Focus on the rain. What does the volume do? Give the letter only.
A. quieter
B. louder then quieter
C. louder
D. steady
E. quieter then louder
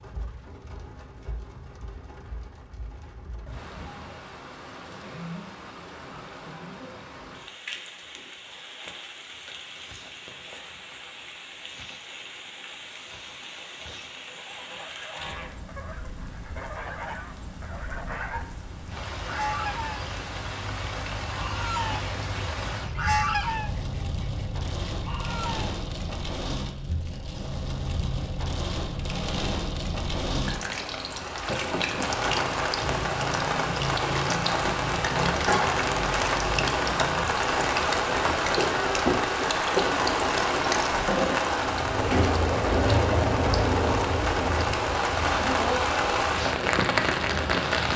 C.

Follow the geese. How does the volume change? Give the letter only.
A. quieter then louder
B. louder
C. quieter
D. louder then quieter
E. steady
B.